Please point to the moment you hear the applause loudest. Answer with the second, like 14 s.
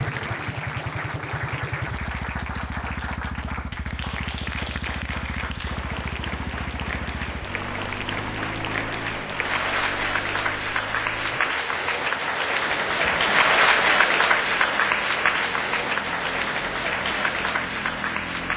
14 s.